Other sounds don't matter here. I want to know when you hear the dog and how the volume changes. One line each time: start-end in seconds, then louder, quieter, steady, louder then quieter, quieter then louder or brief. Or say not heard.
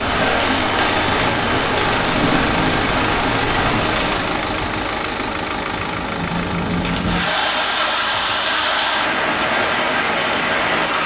not heard.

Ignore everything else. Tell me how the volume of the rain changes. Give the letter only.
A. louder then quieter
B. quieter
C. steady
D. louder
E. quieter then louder
E.